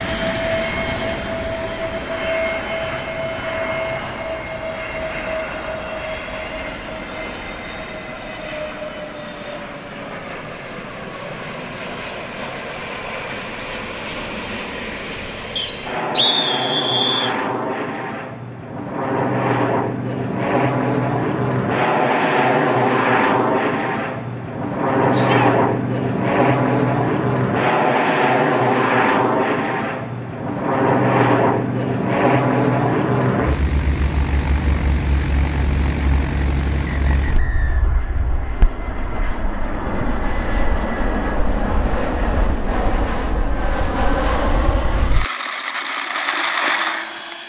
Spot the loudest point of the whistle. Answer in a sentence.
The loudest moment of the whistle is at 16 seconds.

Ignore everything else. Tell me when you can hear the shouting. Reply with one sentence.
The shouting can be heard from 25.1 to 25.6 s.